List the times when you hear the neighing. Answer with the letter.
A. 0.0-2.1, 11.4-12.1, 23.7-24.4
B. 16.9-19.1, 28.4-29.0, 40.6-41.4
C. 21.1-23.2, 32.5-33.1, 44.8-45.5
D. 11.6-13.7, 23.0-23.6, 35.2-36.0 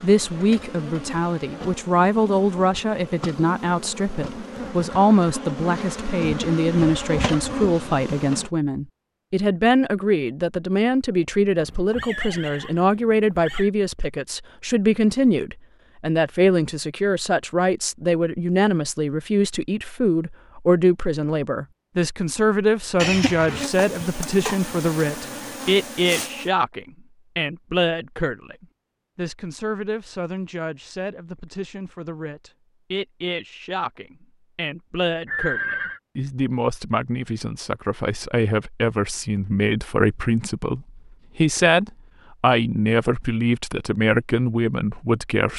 D.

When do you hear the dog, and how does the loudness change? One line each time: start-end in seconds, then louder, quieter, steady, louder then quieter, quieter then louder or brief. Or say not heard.
not heard.